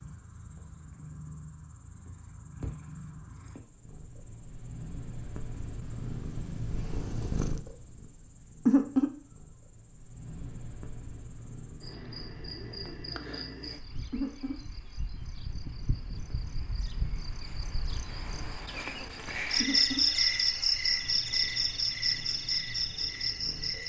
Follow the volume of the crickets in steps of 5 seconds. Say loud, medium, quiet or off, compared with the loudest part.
quiet, quiet, quiet, medium, loud.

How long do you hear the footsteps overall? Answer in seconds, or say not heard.
not heard.